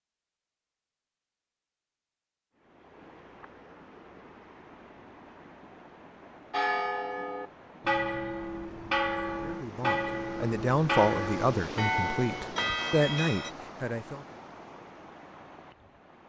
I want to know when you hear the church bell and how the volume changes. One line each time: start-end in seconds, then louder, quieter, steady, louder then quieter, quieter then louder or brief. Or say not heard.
6.5-13.5 steady.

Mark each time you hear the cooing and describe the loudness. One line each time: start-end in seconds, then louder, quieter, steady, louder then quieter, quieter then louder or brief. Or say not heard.
not heard.